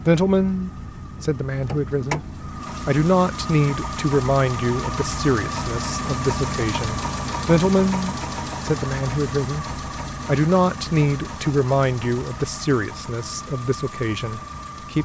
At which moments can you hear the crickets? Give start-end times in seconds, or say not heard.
not heard.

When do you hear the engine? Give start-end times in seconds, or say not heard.
0.0-15.0.